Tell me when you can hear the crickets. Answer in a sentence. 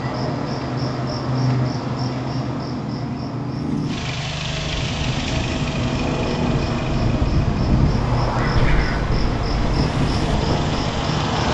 You can hear the crickets from 0.0 to 11.4 s.